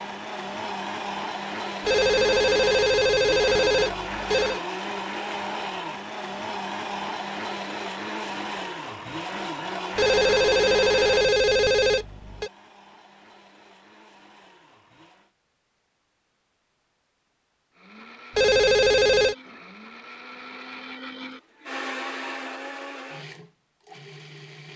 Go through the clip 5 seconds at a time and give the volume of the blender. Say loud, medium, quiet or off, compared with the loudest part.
loud, loud, medium, quiet, medium.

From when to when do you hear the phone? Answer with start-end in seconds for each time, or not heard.
1.9-4.6, 9.9-12.5, 18.4-19.4.